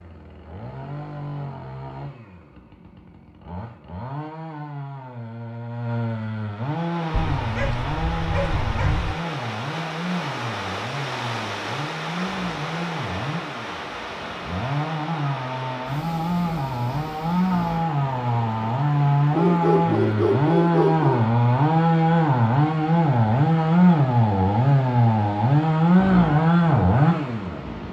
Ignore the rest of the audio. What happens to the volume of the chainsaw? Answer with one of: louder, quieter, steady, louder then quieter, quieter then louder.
louder.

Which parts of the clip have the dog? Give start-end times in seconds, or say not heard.
7.1-9.2, 19.3-21.2.